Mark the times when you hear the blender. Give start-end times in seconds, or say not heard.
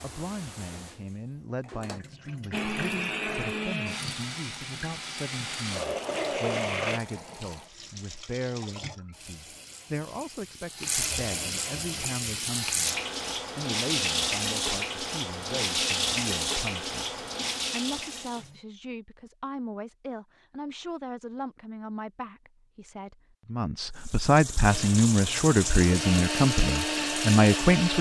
2.5-7.0, 24.6-27.9.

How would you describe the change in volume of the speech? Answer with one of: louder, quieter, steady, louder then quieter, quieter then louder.
louder.